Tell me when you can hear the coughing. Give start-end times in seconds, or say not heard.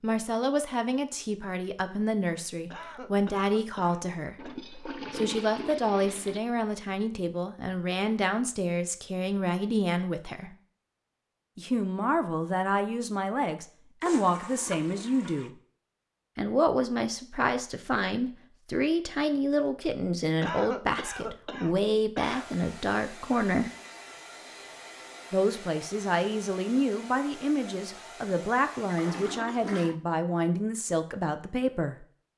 2.7-4.5, 20.4-22.6.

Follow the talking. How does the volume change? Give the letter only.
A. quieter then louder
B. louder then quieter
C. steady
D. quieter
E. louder
C.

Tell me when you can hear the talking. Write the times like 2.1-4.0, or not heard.
0.0-10.6, 11.6-15.5, 16.4-23.7, 25.3-32.0.